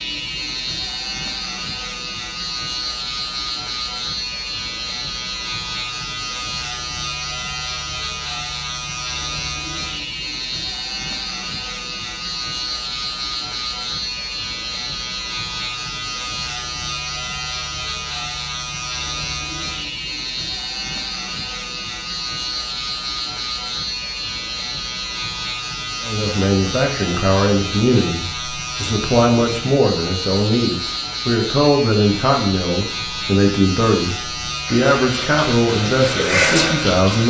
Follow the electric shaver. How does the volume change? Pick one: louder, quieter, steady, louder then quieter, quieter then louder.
steady.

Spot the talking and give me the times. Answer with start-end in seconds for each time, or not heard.
26.0-37.2.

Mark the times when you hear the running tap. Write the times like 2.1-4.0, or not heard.
34.6-37.2.